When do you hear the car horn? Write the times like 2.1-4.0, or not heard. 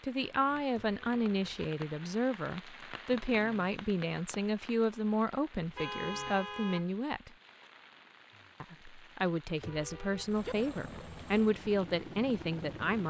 0.7-1.6, 5.5-6.9, 9.6-10.6.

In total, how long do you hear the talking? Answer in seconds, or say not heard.
12 s.